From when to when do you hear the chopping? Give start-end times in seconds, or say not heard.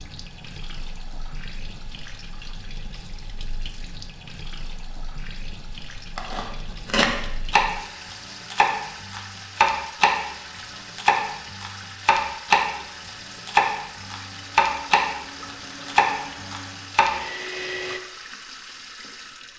6.2-17.1.